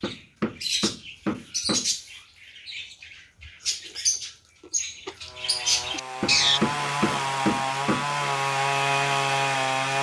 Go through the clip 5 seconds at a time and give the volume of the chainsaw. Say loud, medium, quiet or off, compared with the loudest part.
off, loud.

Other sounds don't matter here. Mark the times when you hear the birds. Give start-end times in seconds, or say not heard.
0.0-6.6.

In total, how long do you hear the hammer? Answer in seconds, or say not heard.
4 s.